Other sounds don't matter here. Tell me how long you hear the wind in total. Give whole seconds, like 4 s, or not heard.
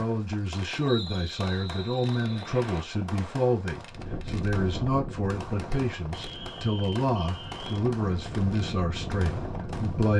6 s.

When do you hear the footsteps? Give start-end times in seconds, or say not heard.
not heard.